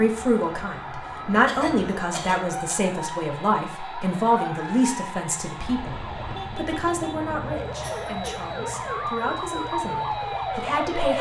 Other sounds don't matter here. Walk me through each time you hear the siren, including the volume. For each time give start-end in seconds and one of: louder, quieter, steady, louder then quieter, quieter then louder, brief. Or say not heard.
0.0-11.1 louder.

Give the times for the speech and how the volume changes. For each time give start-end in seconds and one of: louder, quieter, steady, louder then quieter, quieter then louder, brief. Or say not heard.
0.0-11.1 quieter.